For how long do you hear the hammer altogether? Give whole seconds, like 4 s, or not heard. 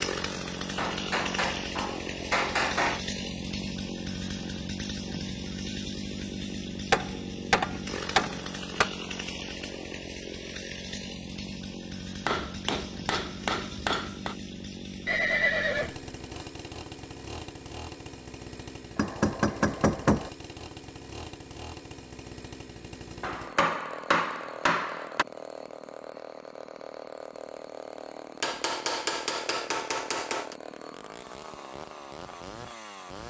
12 s.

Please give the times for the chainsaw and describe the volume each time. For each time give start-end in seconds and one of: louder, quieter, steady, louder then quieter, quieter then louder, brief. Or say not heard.
0.0-33.2 quieter.